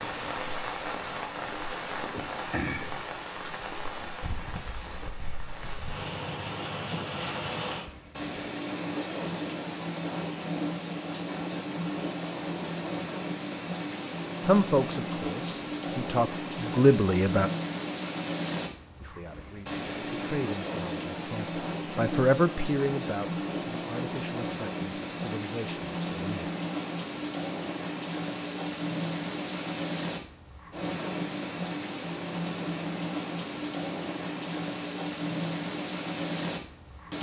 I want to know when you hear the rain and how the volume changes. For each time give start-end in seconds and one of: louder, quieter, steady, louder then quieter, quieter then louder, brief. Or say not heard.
0.0-37.1 steady.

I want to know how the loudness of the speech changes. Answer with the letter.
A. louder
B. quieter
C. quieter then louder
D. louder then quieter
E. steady
B.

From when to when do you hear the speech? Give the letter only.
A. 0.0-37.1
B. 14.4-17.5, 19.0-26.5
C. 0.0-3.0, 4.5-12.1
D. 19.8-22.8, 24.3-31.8
B.